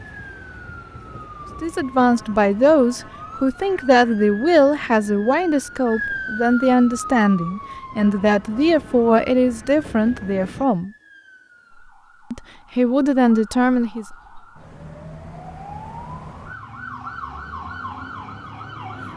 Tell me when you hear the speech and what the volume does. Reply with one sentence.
You can hear the speech from 1.6 to 10.9 s, at a steady volume; and briefly from 12.3 to 14.1 s.